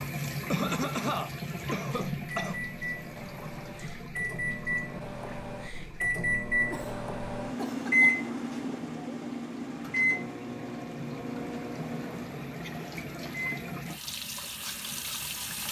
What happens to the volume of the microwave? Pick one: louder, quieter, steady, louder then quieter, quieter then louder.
louder then quieter.